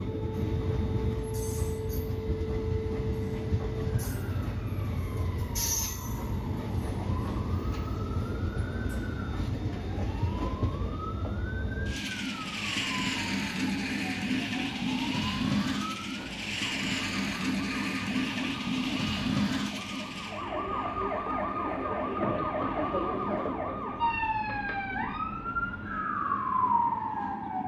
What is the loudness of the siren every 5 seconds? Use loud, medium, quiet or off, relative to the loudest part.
medium, quiet, quiet, quiet, loud, loud.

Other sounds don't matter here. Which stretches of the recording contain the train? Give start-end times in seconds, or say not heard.
0.0-27.6.